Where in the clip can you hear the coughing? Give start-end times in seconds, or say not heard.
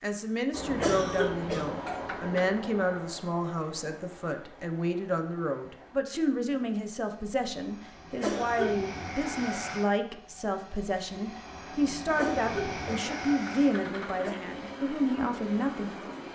0.8-2.5, 8.2-8.8, 12.2-14.3.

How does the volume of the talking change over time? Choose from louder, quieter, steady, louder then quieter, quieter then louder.
steady.